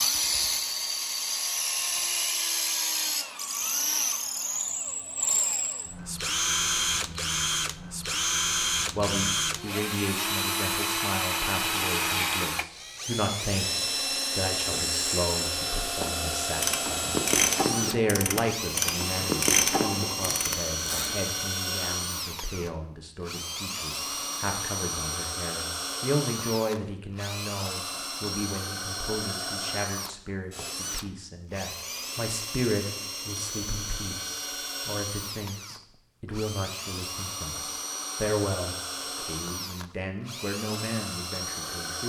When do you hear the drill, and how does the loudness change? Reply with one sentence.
The drill can be heard from 0.0 to 42.0 s, getting quieter.